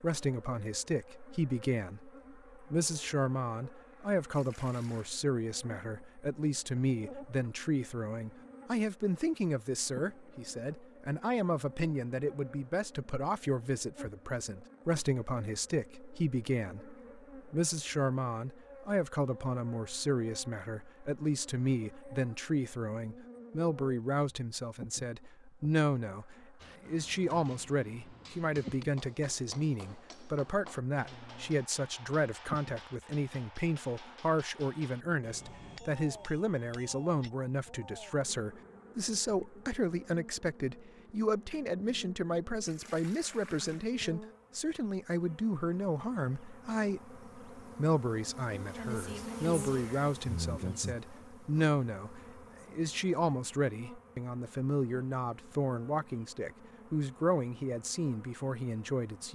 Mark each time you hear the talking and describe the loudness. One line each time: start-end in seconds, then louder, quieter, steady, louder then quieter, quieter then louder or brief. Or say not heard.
0.0-59.3 steady.